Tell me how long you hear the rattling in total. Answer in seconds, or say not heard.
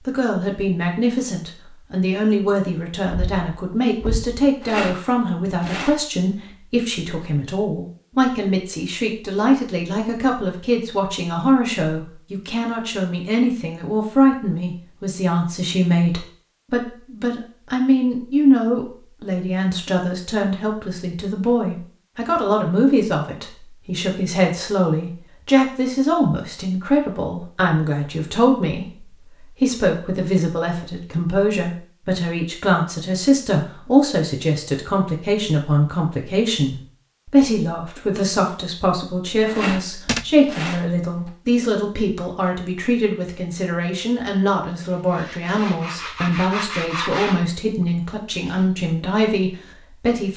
3 s.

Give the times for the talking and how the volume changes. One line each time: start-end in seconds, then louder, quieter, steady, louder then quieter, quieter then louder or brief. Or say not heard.
0.1-50.3 steady.